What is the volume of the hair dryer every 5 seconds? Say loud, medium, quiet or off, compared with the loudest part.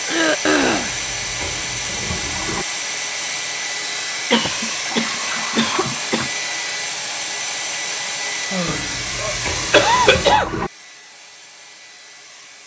loud, loud, medium.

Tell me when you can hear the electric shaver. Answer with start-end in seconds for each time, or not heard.
not heard.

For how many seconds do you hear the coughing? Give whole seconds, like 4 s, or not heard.
5 s.